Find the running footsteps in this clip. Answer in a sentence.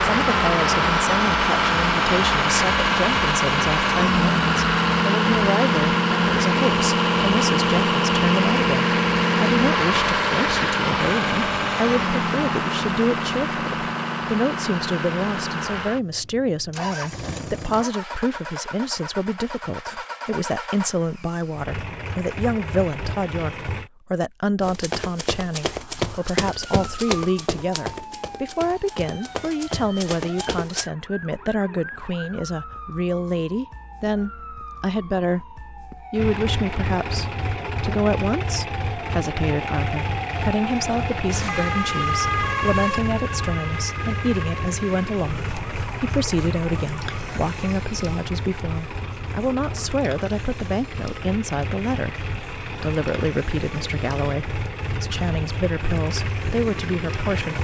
You can hear the running footsteps from 24.6 to 30.9 s.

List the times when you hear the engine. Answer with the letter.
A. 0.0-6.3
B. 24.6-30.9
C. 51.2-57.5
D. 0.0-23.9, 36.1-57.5
D.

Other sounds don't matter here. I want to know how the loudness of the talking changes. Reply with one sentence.
The loudness of the talking stays about the same.